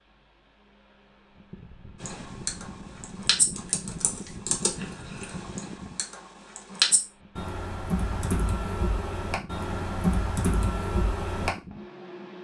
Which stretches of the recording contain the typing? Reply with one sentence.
You can hear the typing from 2.0 to 11.5 s.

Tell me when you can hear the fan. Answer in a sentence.
The fan can be heard from 0.0 to 12.3 s.